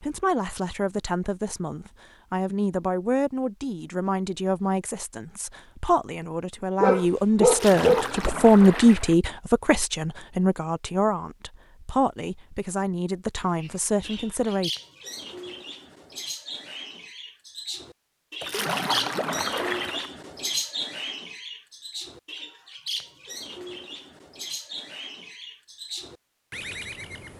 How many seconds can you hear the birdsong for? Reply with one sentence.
The birdsong can be heard for 14 seconds in total.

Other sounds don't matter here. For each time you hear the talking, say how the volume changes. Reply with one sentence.
You can hear the talking from 0.0 to 14.7 s, getting louder then quieter.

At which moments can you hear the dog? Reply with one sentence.
You can hear the dog from 6.8 to 8.3 s.